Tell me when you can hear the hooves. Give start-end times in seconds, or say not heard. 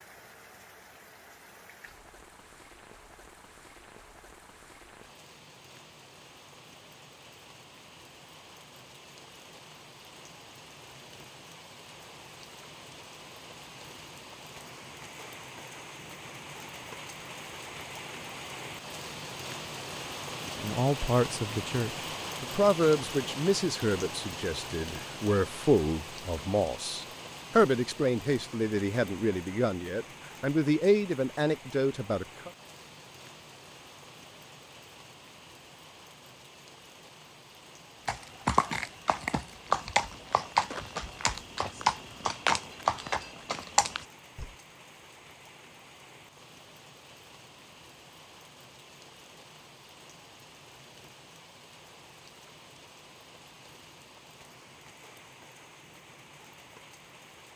38.0-44.5.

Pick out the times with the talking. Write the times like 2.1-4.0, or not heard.
20.5-32.5.